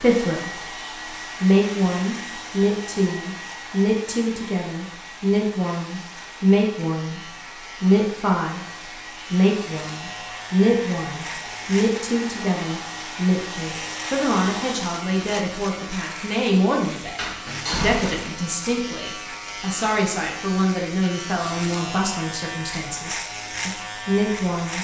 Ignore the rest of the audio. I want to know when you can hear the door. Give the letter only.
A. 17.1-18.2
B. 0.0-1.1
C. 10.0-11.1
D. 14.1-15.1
A.